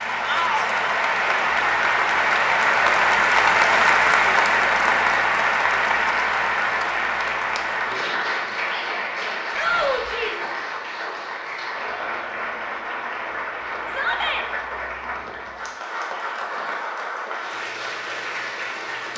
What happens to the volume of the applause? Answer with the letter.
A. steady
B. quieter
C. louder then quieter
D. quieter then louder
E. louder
B.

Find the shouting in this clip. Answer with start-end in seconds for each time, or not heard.
0.2-0.8, 9.5-10.4, 13.8-14.4.